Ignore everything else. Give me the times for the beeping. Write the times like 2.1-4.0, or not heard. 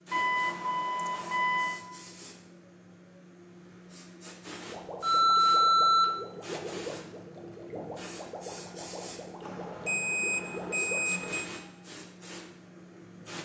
0.1-1.8, 5.0-6.1, 9.4-11.5.